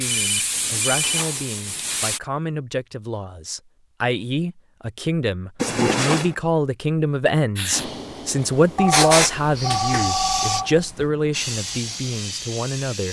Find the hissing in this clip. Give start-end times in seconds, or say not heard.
0.0-2.2, 7.5-13.0.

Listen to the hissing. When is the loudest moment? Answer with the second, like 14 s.
9 s.